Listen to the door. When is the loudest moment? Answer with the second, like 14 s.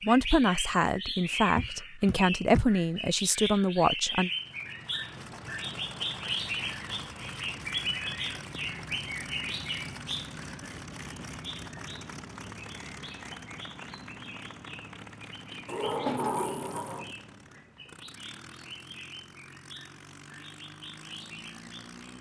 16 s.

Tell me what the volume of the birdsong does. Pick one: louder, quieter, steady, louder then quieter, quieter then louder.
quieter.